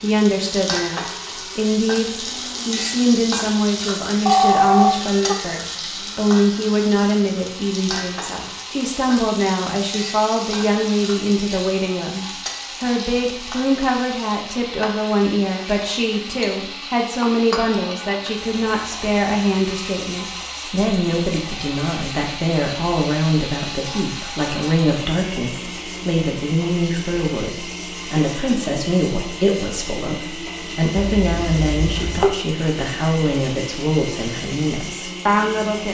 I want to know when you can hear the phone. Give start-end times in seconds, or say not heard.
4.2-5.3, 30.9-32.3.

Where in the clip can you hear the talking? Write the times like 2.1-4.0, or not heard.
0.0-35.8.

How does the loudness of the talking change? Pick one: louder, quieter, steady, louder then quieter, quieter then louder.
steady.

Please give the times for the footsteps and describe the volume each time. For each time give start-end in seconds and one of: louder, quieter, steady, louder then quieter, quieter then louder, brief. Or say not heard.
not heard.